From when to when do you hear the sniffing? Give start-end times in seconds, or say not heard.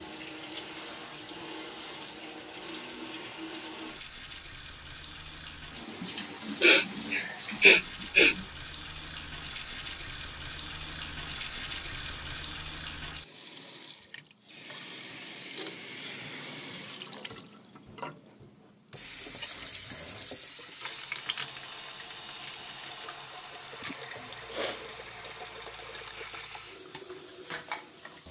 6.0-8.3, 23.8-24.9.